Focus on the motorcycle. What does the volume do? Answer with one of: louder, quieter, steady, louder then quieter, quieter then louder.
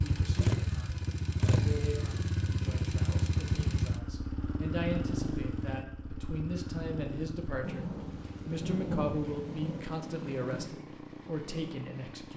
quieter.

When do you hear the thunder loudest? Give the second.
9 s.